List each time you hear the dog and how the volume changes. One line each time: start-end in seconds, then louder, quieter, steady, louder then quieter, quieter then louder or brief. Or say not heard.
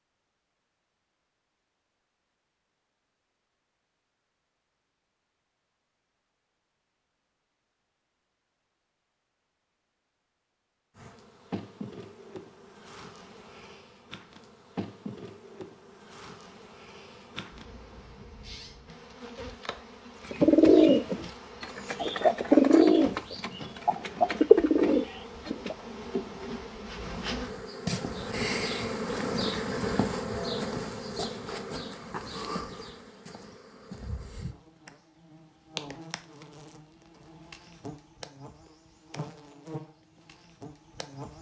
not heard.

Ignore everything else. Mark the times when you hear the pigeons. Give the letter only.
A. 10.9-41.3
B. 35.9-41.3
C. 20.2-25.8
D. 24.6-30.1
C.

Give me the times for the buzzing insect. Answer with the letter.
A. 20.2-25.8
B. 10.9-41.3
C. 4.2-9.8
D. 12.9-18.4
B.